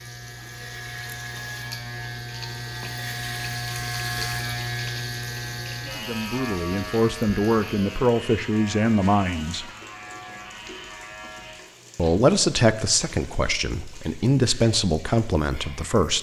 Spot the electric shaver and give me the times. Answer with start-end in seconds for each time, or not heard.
0.0-11.6.